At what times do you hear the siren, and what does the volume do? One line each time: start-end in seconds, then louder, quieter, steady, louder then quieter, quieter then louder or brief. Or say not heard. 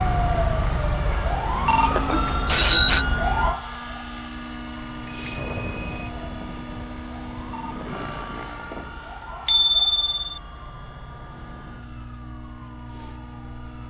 0.0-13.8 quieter.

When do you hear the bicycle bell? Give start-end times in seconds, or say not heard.
2.1-3.0, 5.0-6.0, 9.4-10.1.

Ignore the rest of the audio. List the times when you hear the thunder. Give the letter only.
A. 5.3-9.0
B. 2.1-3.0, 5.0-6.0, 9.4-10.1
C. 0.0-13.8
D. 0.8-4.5
A.